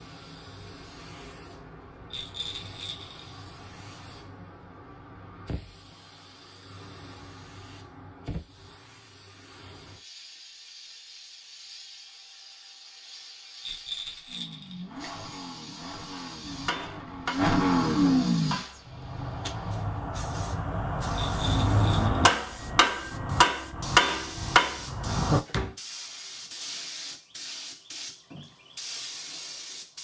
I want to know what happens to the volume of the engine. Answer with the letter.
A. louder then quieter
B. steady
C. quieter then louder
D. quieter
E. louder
E.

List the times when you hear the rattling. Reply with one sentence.
You can hear the rattling from 2.1 to 3.2 s, from 13.6 to 14.8 s and from 21.1 to 22.4 s.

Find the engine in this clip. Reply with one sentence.
You can hear the engine from 14.2 to 18.6 s.